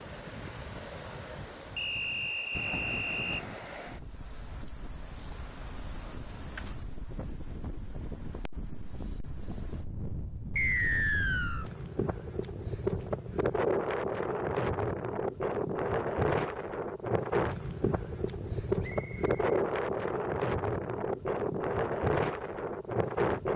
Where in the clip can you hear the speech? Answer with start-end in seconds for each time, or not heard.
not heard.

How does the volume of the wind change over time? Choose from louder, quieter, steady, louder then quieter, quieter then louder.
louder.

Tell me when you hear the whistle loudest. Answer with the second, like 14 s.
11 s.